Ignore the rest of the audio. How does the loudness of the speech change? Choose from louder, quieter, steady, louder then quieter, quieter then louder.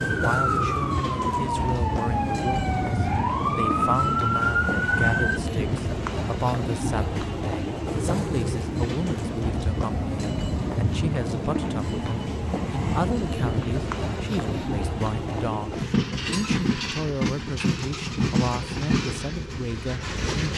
steady.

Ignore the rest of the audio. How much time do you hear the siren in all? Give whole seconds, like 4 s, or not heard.
5 s.